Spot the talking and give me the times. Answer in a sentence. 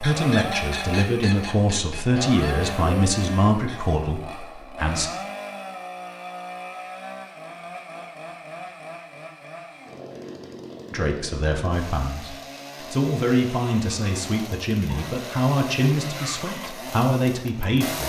You can hear the talking from 0.0 to 5.1 s and from 10.9 to 18.0 s.